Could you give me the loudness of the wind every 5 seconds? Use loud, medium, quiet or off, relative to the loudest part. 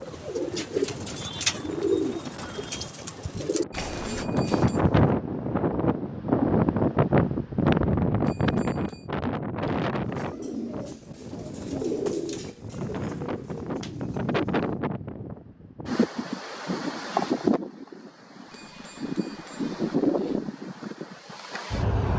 medium, loud, medium, medium, medium.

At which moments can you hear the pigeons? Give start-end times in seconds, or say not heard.
0.0-5.2, 9.6-14.8.